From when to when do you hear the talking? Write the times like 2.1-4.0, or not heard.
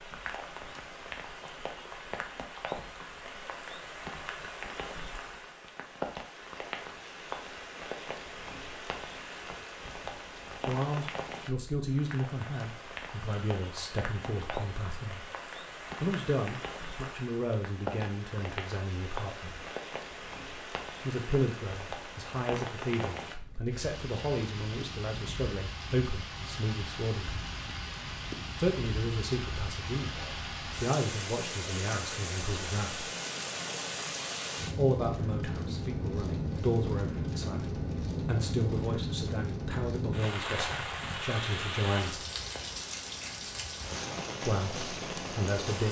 10.7-15.2, 16.0-19.6, 21.1-27.4, 28.6-33.1, 34.8-42.2, 44.4-45.8.